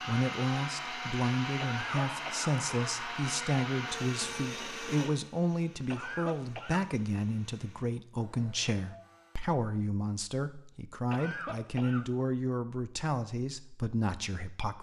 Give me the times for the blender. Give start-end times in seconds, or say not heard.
0.0-9.6.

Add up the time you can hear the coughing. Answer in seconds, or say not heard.
3 s.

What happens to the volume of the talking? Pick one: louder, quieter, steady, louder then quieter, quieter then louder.
steady.